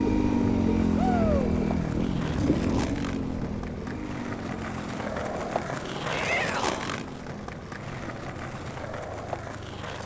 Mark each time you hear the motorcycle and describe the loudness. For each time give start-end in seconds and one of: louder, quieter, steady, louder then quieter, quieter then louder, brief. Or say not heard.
0.0-10.0 quieter.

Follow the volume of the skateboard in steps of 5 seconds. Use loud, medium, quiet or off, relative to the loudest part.
medium, loud.